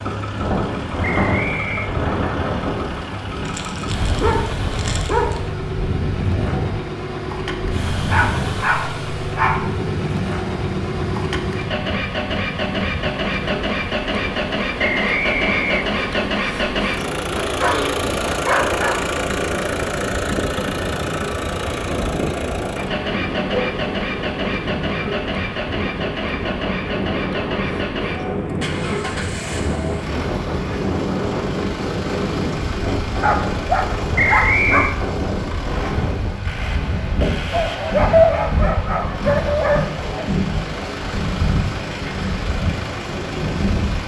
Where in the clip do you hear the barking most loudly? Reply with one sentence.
The volume of the barking peaks at 38 seconds.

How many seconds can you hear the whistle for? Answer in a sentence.
The whistle can be heard for 3 seconds in total.